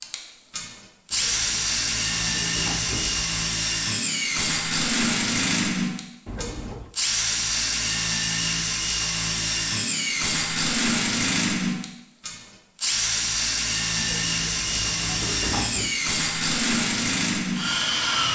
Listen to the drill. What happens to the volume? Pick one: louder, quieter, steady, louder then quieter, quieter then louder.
steady.